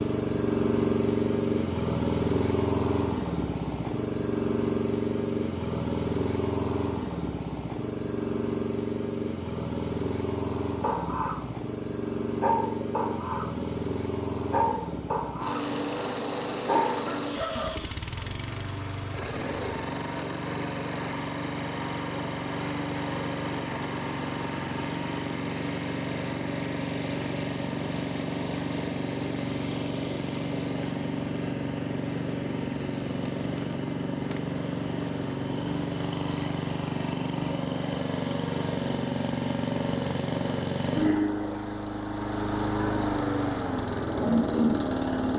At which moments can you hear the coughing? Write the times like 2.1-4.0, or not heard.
16.6-17.7.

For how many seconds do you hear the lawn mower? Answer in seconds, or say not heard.
45 s.